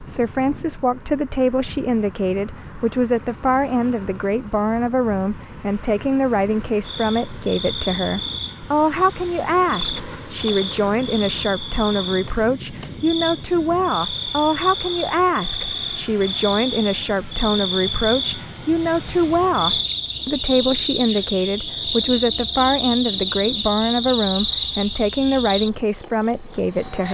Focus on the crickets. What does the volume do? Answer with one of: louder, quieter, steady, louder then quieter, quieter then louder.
louder.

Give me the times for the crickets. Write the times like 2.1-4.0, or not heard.
6.8-27.0.